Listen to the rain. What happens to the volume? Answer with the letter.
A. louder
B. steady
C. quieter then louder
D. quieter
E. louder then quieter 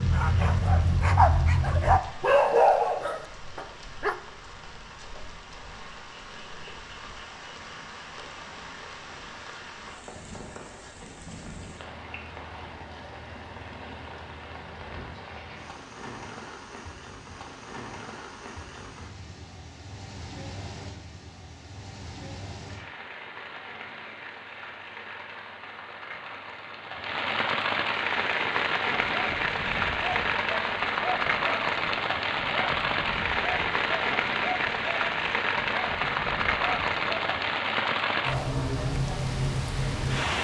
A.